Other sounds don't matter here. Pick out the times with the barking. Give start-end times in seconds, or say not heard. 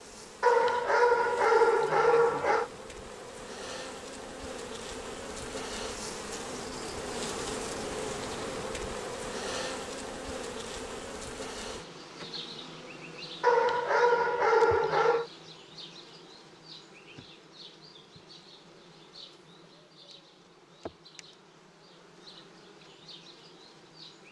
0.4-2.7, 13.4-15.2.